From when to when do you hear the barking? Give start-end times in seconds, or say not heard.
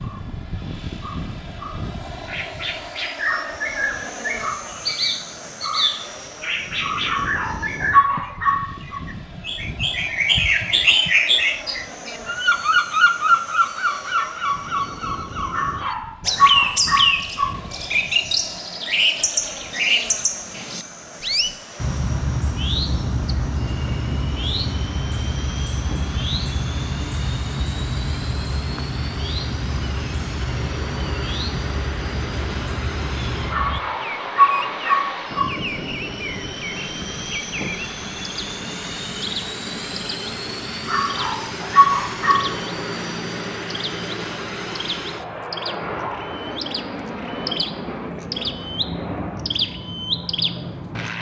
7.0-9.0, 15.5-17.5, 33.5-35.5, 40.9-42.5.